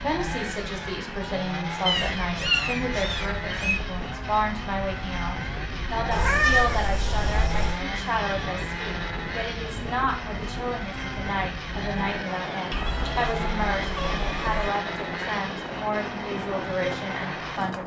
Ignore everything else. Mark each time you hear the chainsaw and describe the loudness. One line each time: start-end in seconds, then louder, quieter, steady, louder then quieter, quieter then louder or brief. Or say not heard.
0.0-17.8 steady.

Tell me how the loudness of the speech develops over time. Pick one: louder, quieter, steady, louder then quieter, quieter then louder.
steady.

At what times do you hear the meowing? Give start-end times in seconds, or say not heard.
1.9-3.8, 6.1-7.8, 12.7-14.7.